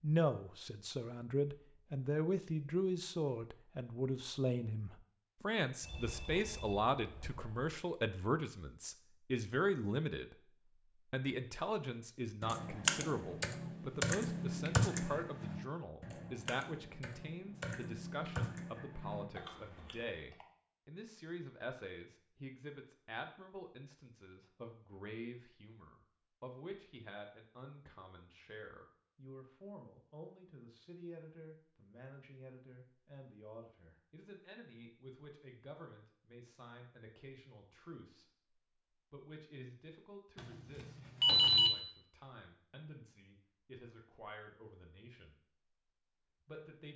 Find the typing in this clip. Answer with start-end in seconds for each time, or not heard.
12.4-20.4.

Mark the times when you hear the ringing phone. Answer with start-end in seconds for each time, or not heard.
5.8-7.8, 40.4-41.8.